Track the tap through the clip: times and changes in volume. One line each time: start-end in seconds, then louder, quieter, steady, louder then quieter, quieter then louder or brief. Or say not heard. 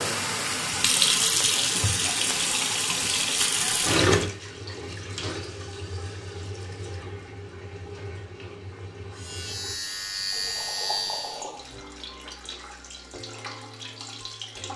0.0-14.7 quieter.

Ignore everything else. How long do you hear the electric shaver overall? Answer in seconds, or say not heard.
2 s.